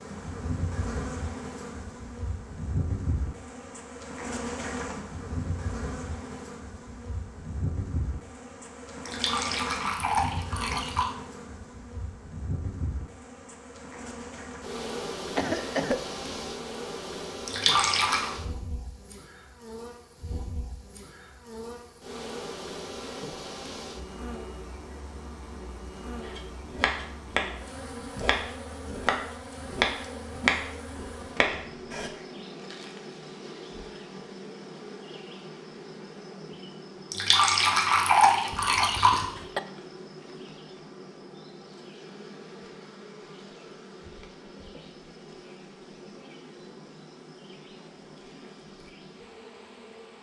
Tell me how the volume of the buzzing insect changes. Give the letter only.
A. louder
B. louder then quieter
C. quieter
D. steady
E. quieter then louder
C.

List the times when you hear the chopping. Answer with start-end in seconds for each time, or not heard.
26.2-32.1.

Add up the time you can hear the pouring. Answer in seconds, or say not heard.
5 s.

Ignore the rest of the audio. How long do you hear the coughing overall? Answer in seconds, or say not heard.
2 s.